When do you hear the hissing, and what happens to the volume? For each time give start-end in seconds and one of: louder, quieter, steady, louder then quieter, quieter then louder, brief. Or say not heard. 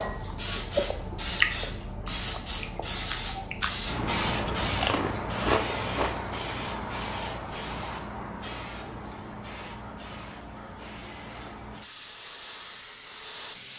0.0-13.7 quieter.